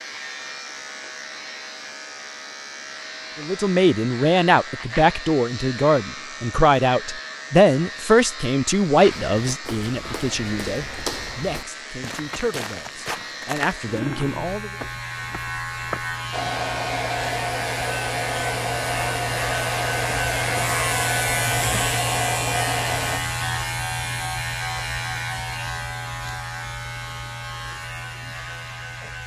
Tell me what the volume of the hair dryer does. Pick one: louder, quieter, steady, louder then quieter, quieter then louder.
steady.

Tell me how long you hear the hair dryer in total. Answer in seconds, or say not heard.
7 s.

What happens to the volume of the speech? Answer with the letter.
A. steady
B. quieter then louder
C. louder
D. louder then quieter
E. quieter
E.